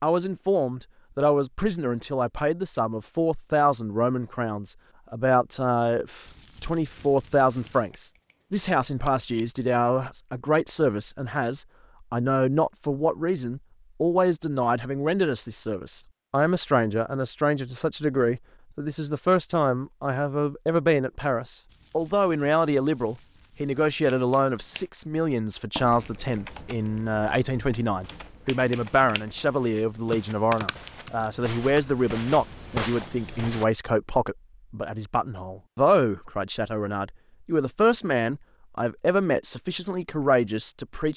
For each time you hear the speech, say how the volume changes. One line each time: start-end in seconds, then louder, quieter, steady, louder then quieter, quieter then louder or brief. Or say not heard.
0.0-41.1 steady.